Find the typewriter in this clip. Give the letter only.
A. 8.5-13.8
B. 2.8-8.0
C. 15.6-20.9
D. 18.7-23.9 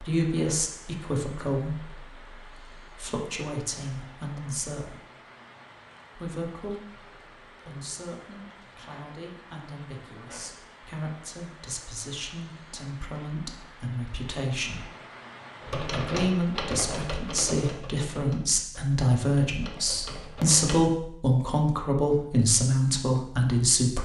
C.